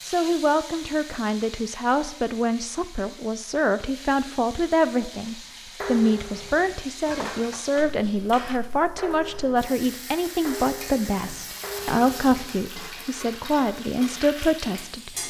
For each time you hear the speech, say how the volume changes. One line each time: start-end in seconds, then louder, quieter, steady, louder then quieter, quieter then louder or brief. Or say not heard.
0.1-15.2 steady.